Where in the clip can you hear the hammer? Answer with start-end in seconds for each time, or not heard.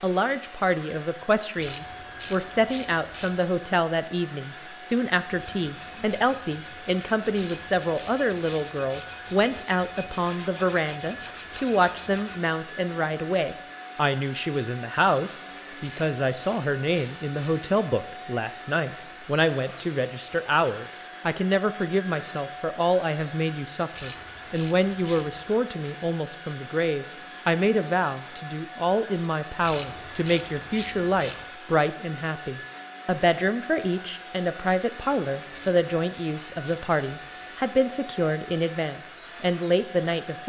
not heard.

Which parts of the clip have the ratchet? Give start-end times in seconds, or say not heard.
1.6-3.4, 7.3-9.2, 15.8-17.6, 23.9-25.4, 29.6-31.4, 35.5-37.0.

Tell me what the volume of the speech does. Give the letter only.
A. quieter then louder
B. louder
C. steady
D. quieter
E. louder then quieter
C.